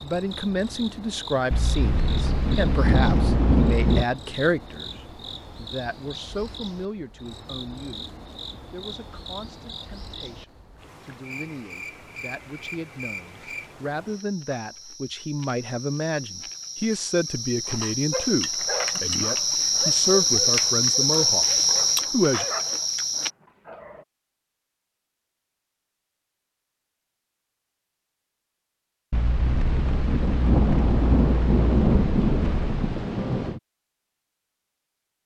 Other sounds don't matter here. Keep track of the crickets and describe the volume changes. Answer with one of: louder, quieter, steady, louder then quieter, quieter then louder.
louder.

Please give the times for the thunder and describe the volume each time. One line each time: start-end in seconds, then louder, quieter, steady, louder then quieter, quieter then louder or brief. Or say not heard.
1.5-4.0 brief
29.1-33.6 louder then quieter.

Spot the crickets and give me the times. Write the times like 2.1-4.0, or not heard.
0.0-23.3.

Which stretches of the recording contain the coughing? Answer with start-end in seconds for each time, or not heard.
not heard.